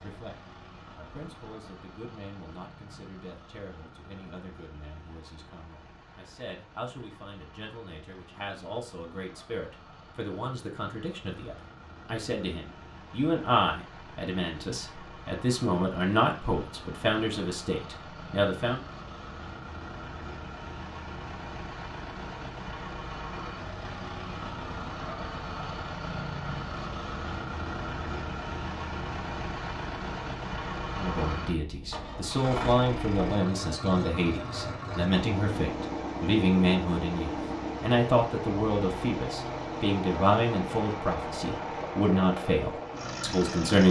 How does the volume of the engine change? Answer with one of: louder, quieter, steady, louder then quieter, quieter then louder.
louder.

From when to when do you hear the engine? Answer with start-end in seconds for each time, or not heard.
0.0-43.8.